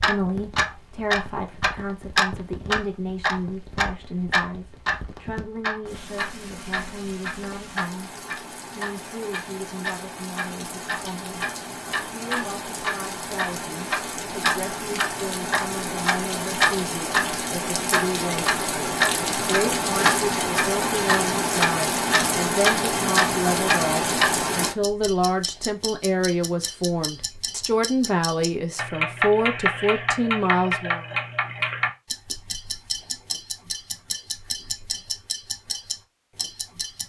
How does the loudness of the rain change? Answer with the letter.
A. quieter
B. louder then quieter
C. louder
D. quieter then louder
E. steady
C.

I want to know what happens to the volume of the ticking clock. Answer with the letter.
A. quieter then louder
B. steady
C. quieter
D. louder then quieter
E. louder
C.